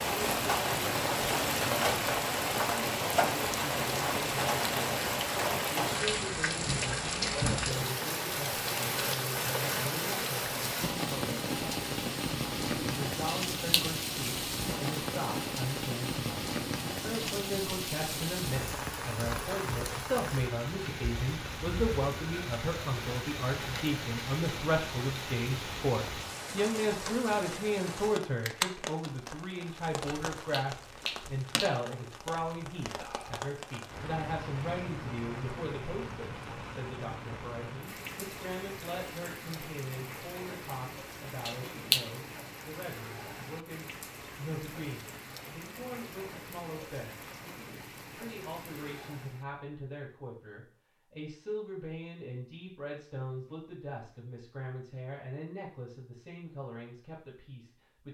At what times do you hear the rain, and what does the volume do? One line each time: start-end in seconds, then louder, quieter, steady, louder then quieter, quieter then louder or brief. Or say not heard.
0.0-49.5 quieter.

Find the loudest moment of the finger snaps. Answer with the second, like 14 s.
42 s.